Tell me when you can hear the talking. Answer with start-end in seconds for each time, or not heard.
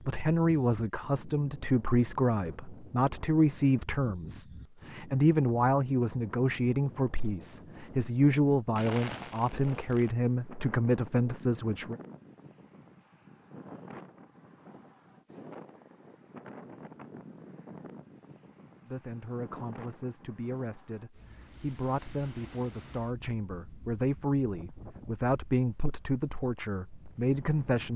0.0-11.9, 18.9-27.9.